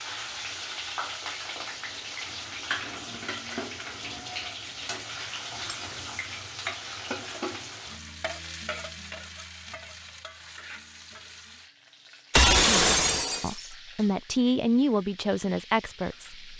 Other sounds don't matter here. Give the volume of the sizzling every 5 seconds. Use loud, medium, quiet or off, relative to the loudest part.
loud, loud, quiet, quiet.